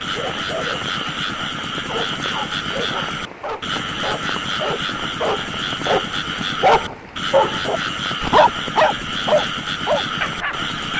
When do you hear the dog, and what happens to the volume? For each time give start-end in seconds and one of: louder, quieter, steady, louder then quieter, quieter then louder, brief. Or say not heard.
0.0-10.9 louder.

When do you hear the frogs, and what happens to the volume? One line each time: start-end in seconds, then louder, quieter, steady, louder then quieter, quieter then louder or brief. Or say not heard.
0.0-10.9 steady.